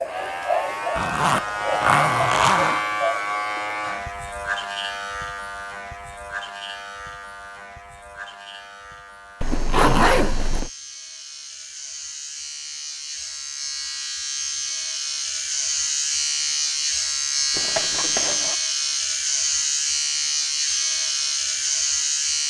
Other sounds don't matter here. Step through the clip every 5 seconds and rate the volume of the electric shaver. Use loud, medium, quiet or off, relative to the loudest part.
loud, quiet, medium, loud, loud.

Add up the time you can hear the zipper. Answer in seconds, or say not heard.
4 s.